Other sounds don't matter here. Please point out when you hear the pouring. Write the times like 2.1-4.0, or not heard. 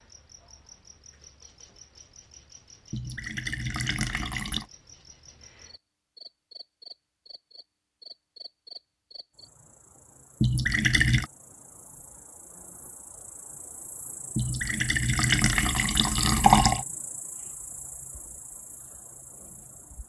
2.9-4.7, 10.4-11.3, 14.3-16.9.